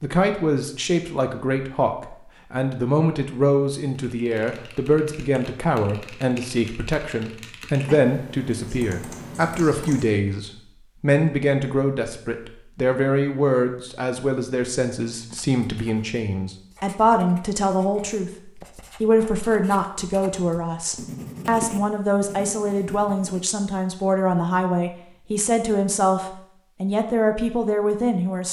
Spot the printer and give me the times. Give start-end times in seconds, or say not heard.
not heard.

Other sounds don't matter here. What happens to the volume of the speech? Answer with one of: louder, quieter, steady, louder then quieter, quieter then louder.
steady.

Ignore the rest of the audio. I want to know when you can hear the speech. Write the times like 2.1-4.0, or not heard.
0.0-28.4.